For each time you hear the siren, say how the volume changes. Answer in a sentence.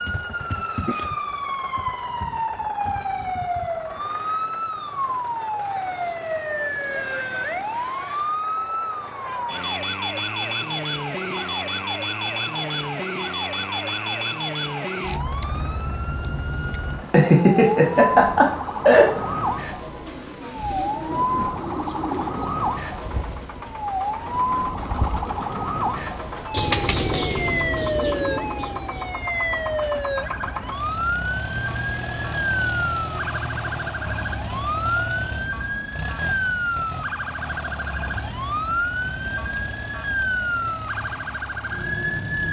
You can hear the siren from 0.0 to 42.4 s, at a steady volume.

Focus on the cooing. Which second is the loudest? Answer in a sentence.
The volume of the cooing peaks at 27 seconds.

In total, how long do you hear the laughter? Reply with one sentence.
The laughter can be heard for 2 seconds in total.